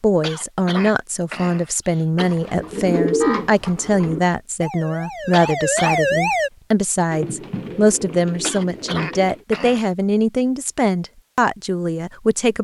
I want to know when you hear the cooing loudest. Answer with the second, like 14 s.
3 s.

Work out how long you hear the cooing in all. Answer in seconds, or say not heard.
4 s.